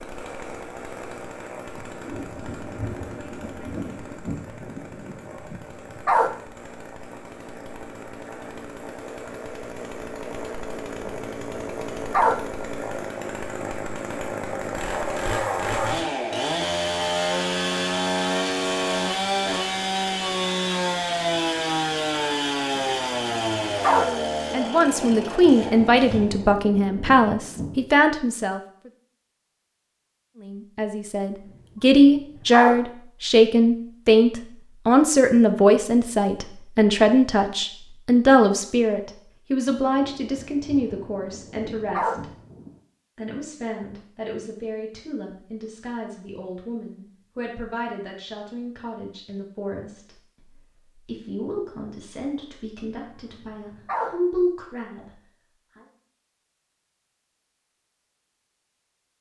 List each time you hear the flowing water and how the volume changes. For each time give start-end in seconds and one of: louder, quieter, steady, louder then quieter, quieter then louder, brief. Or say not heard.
not heard.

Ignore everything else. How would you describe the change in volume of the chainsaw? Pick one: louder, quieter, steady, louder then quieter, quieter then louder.
louder.